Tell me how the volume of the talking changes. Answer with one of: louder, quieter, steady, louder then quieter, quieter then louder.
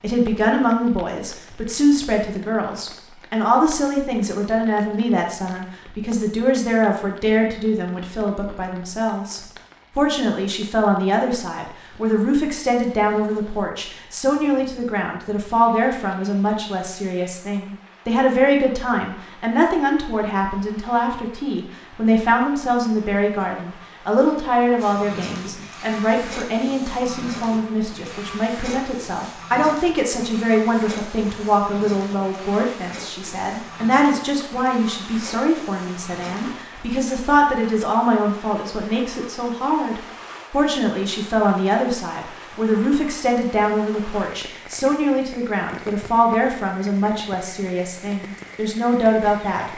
steady.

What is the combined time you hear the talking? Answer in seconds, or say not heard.
50 s.